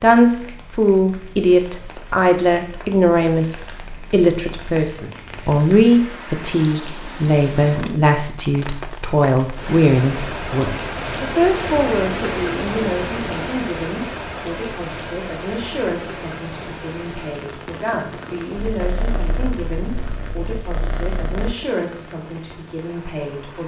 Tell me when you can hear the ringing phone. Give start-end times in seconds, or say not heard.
not heard.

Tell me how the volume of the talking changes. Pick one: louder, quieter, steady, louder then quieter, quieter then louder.
quieter.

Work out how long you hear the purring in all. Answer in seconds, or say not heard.
3 s.